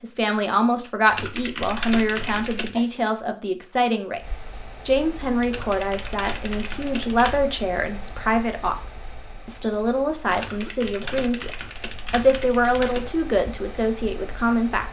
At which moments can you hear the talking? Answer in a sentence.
The talking can be heard from 0.0 to 14.8 s.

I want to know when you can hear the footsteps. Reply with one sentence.
You can't hear the footsteps here.